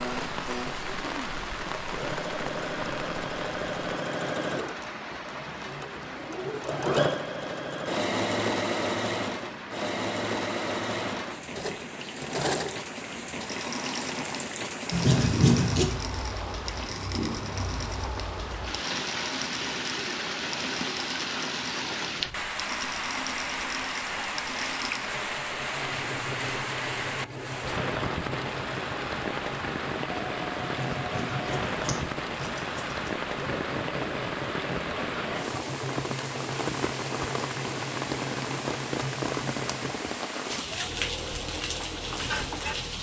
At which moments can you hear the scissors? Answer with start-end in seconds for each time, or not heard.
14.9-15.9, 30.6-33.1.